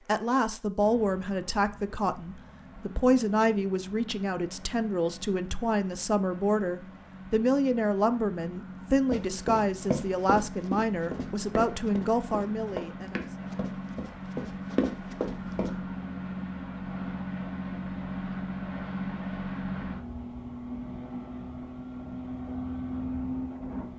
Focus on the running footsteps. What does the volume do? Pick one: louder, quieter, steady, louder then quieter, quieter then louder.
quieter then louder.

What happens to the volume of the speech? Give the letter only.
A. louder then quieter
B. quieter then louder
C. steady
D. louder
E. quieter
C.